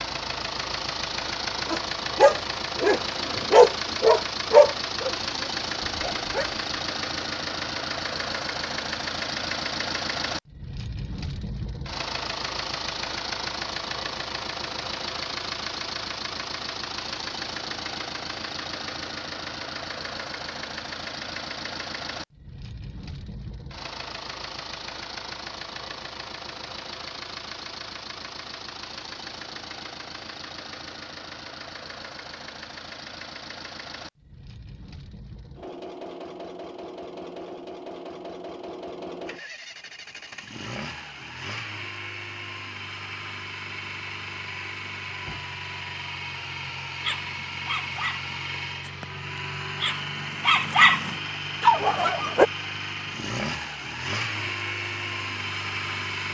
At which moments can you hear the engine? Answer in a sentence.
The engine can be heard from 0.0 to 56.2 s.